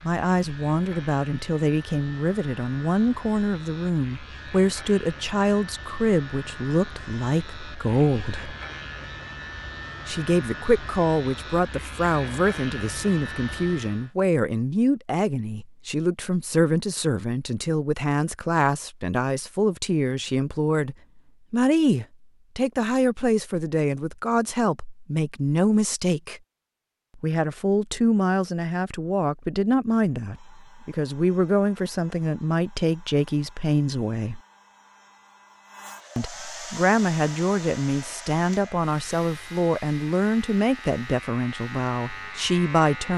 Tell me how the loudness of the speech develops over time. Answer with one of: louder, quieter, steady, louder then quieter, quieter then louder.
steady.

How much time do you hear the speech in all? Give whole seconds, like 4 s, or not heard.
39 s.